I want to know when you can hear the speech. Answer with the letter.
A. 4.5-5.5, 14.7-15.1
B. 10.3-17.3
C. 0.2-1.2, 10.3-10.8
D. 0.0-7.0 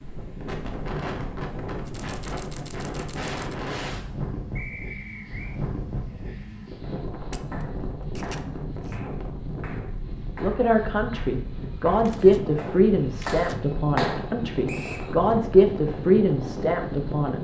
B.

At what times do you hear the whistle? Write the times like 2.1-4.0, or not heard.
4.5-5.5, 14.7-15.1.